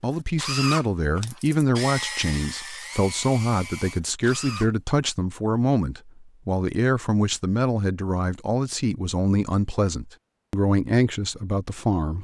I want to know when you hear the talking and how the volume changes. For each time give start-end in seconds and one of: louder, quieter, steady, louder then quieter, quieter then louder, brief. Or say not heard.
0.0-12.1 steady.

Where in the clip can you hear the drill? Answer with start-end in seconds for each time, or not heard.
0.0-4.7.